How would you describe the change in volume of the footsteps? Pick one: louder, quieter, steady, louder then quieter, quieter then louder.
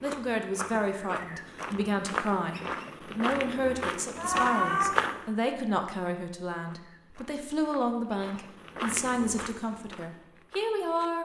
louder then quieter.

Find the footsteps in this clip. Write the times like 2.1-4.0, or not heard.
0.0-5.2, 6.6-11.1.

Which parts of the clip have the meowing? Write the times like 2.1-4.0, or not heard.
4.2-5.0.